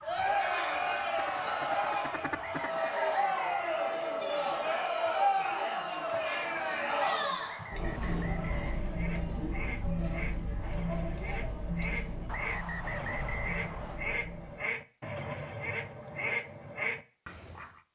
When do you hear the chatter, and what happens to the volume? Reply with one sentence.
You can hear the chatter from 0.0 to 14.7 s, getting quieter.